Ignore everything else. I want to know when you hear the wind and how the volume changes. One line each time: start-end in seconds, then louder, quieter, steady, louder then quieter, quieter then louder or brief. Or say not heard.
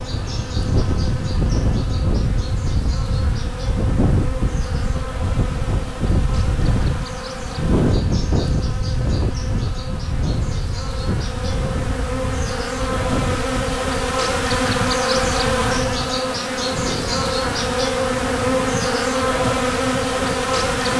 0.0-20.9 quieter.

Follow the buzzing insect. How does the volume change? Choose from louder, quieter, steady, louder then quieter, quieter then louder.
louder.